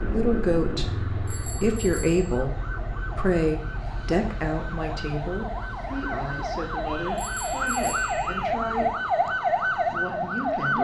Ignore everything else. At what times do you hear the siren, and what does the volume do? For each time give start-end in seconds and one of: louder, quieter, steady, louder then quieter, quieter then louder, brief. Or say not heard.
0.1-10.7 louder.